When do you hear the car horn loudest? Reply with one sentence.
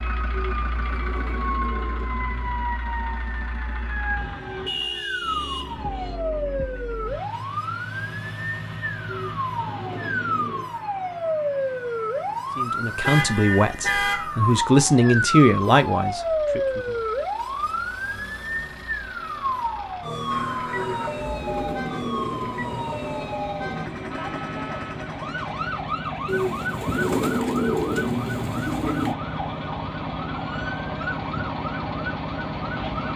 The volume of the car horn peaks at 14 seconds.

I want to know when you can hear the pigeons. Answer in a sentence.
The pigeons can be heard from 0.3 to 2.7 s, from 9.1 to 10.8 s, from 20.7 to 23.0 s and from 26.2 to 29.1 s.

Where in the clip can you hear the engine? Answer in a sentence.
The engine can be heard from 0.0 to 33.1 s.